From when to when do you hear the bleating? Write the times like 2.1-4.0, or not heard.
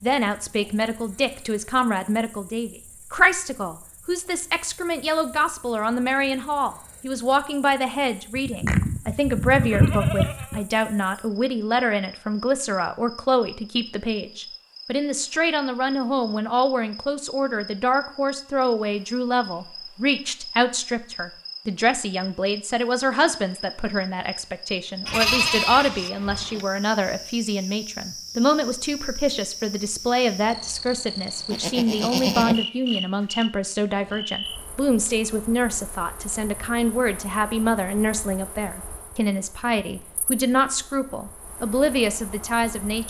8.3-10.6, 25.1-26.6, 31.5-32.6.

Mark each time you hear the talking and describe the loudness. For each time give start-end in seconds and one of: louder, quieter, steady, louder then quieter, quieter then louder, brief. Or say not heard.
0.0-43.0 steady.